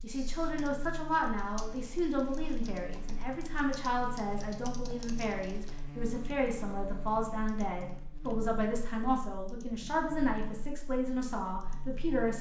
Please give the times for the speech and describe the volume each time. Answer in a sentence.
You can hear the speech from 0.0 to 12.3 s, at a steady volume.